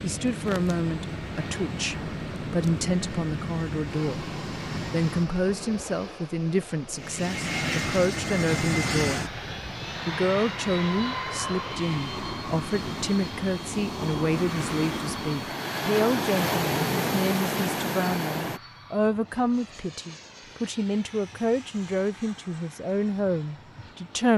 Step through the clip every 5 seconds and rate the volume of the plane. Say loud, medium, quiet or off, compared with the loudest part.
medium, loud, medium, quiet, quiet.